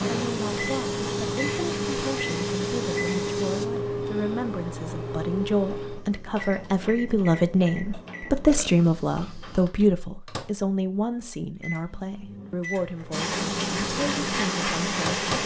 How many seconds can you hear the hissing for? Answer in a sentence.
The hissing can be heard for 6 seconds in total.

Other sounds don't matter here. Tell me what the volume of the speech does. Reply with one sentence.
The loudness of the speech goes up, then down.